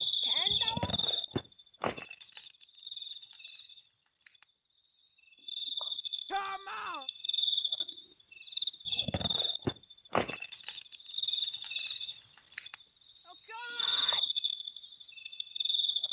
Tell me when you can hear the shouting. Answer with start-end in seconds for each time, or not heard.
0.2-0.9, 6.3-7.0, 13.2-14.2.